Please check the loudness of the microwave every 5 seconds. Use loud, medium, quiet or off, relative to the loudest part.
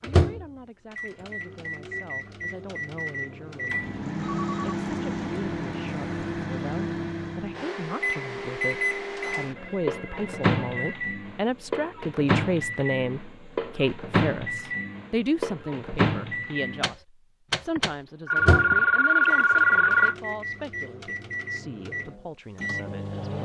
loud, loud, loud, loud, medium.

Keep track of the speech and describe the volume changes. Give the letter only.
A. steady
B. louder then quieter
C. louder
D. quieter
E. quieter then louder
B.